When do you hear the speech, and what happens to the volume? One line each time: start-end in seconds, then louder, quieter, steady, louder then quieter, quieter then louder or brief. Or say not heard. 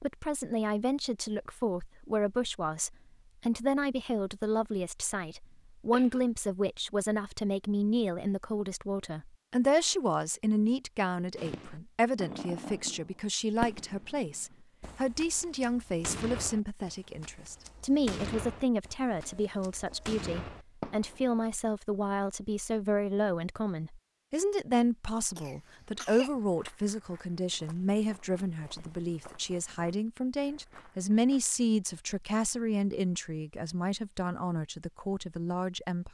0.0-36.0 steady.